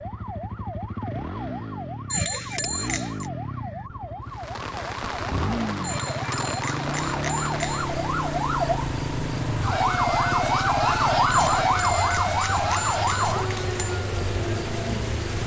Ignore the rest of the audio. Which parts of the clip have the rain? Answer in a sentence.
The rain can be heard from 4.2 to 15.4 s.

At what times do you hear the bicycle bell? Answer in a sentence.
The bicycle bell can be heard from 2.1 to 3.2 s, from 5.8 to 8.0 s and from 11.3 to 13.8 s.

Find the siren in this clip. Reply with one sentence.
The siren can be heard from 0.0 to 15.4 s.